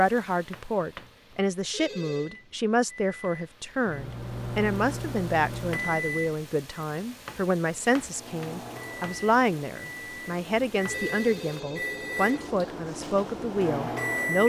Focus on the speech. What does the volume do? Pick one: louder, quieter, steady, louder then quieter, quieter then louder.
steady.